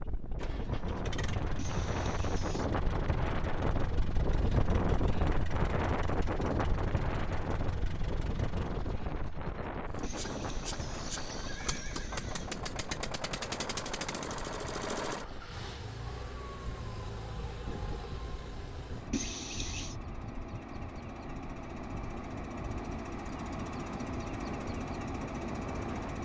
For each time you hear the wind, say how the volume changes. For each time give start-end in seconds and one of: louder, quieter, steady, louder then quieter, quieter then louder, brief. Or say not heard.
0.0-26.2 quieter.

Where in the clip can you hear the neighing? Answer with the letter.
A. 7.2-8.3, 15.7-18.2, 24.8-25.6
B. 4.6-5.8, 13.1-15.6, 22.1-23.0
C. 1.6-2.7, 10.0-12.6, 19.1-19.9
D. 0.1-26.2
C.